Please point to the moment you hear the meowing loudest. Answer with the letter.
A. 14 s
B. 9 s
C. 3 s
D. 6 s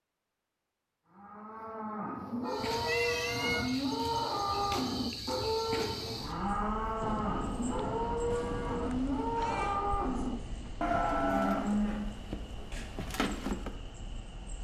C.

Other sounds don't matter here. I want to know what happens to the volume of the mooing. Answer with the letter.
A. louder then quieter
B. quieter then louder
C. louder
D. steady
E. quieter
D.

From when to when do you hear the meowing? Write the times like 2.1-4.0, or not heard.
2.6-3.7, 8.3-9.8.